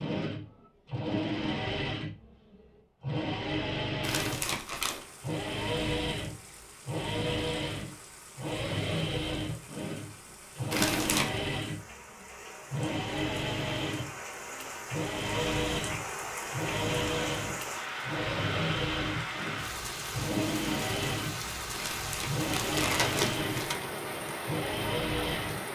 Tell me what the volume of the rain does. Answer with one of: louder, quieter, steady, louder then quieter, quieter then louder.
louder.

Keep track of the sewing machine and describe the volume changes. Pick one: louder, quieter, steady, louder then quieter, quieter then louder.
steady.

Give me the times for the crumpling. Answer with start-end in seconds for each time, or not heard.
4.0-5.0, 10.7-11.4, 21.7-23.8.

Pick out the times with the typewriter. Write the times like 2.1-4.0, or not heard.
not heard.